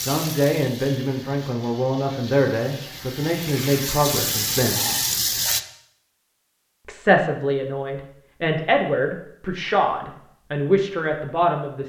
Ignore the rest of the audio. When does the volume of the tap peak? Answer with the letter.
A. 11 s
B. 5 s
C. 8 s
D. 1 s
B.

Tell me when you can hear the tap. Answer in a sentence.
The tap can be heard from 0.0 to 5.6 s.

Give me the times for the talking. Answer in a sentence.
You can hear the talking from 0.1 to 4.8 s and from 6.8 to 11.8 s.